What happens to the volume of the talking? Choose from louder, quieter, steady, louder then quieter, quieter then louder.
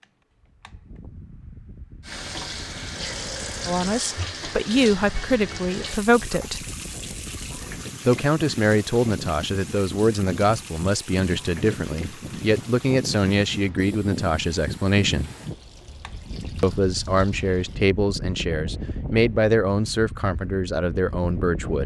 steady.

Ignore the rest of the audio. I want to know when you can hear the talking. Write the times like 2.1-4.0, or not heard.
3.6-6.7, 8.1-15.3, 16.6-21.8.